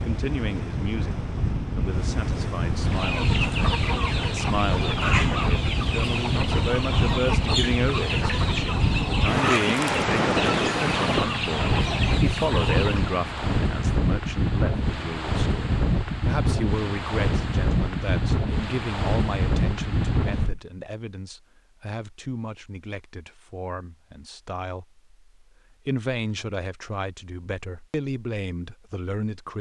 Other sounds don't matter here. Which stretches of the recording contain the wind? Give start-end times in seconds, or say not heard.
0.0-20.6.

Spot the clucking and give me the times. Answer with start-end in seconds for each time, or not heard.
2.8-13.2.